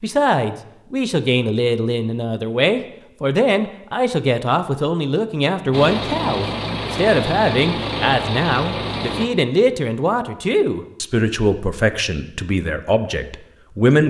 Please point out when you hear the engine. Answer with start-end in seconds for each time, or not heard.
5.7-9.3.